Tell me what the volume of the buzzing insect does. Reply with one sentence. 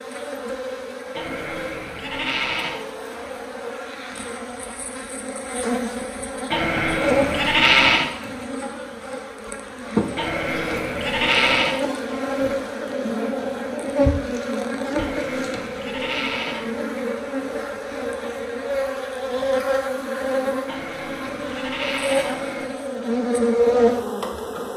The volume of the buzzing insect goes up.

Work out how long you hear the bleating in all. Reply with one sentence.
You can hear the bleating for 9 seconds altogether.